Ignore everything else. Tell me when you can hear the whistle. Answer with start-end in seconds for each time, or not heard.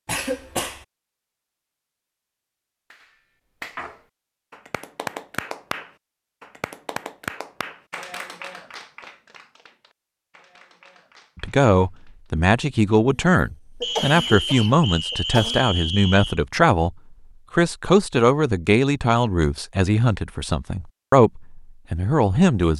13.8-16.4.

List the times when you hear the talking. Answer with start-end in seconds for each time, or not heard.
11.4-22.7.